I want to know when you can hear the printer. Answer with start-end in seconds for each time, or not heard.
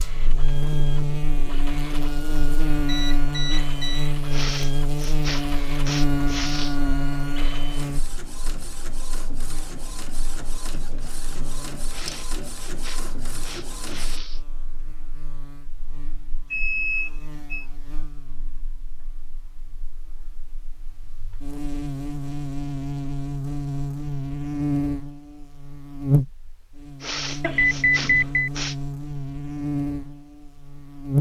0.0-14.2.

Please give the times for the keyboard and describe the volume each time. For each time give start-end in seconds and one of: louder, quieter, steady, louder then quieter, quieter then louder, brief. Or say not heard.
not heard.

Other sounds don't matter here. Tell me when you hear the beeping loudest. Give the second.
28 s.